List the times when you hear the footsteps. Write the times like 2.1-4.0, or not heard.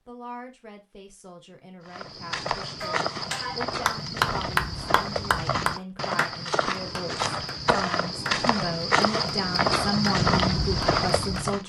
1.9-11.6.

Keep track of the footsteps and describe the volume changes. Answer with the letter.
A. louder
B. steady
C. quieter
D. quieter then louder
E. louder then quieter
A.